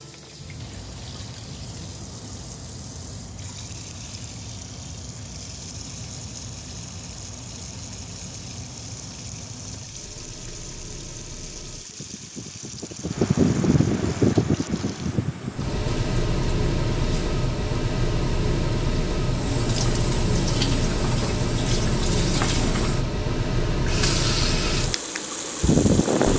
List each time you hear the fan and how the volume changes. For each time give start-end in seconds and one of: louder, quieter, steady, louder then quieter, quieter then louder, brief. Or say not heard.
0.1-26.3 louder.